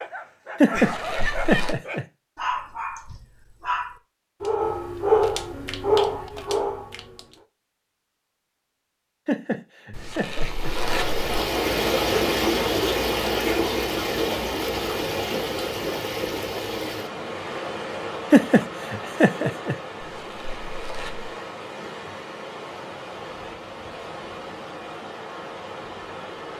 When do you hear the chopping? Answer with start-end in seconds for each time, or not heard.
not heard.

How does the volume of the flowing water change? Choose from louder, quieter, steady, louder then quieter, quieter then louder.
quieter.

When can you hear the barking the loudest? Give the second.
5 s.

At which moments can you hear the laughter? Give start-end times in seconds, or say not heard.
0.6-2.0, 9.2-10.7, 18.3-19.8.